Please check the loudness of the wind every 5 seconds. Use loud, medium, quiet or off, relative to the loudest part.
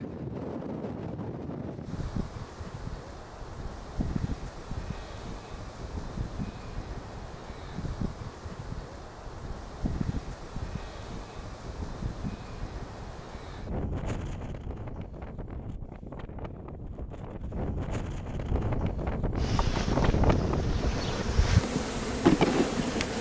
medium, medium, medium, loud, loud.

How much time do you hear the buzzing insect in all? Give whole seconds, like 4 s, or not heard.
4 s.